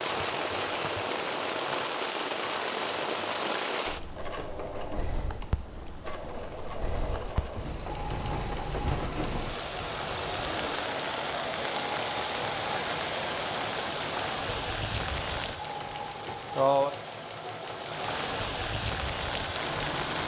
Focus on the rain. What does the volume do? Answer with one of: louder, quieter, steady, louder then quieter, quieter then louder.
quieter then louder.